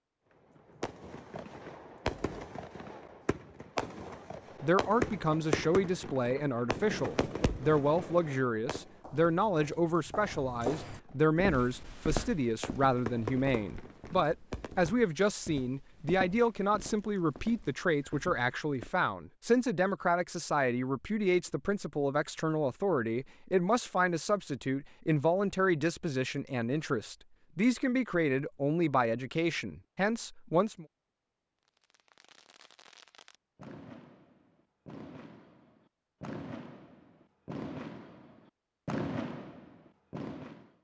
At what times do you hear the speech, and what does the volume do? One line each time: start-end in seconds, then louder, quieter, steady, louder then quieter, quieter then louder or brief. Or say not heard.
4.6-30.9 steady.